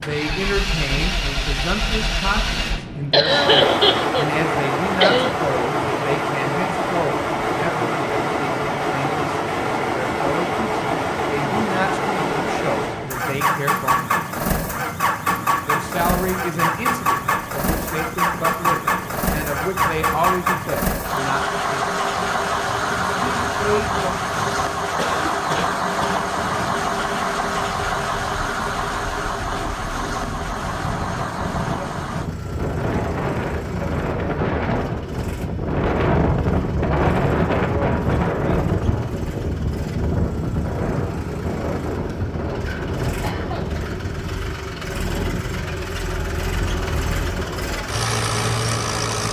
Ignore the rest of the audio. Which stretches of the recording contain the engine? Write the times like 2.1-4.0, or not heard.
0.0-49.2.